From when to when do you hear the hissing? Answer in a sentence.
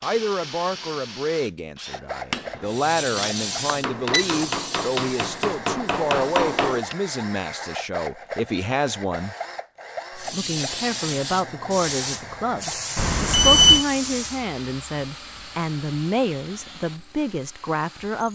You can hear the hissing from 2.6 to 6.9 s and from 10.2 to 14.4 s.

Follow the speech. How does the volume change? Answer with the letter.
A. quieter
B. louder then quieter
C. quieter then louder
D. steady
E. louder
D.